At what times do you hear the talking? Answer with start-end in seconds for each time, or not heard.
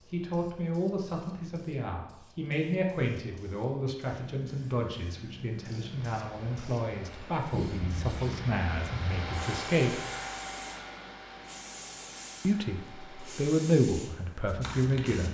0.0-9.9, 12.4-15.2.